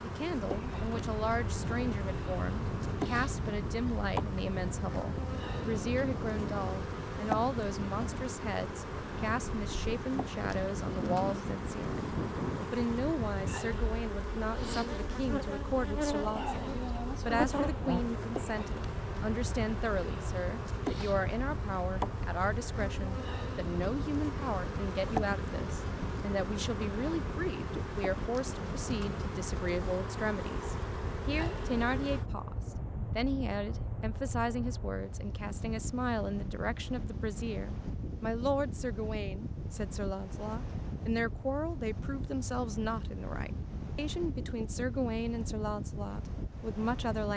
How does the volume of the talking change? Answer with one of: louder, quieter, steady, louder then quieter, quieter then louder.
steady.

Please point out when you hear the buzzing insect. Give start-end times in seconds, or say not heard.
0.0-32.2.